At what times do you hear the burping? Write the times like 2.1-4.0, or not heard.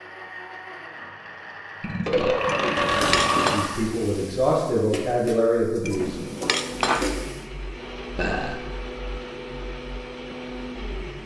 1.8-3.7, 8.2-8.6.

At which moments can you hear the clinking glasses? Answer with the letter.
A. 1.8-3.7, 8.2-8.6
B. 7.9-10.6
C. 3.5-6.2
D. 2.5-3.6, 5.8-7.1
D.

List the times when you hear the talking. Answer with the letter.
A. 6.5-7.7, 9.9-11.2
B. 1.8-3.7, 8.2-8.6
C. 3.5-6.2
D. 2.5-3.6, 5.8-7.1
C.